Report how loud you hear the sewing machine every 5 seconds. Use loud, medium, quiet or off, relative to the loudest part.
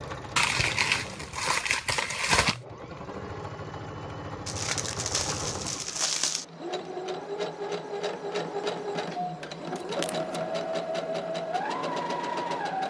medium, loud, loud.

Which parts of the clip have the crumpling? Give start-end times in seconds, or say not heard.
0.3-2.6, 4.5-6.5, 9.8-10.2.